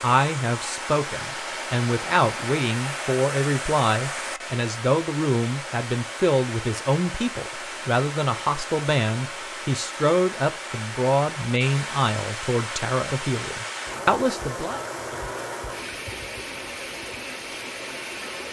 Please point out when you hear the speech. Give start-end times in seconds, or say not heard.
0.0-14.8.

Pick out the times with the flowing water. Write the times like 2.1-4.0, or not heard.
0.0-18.4.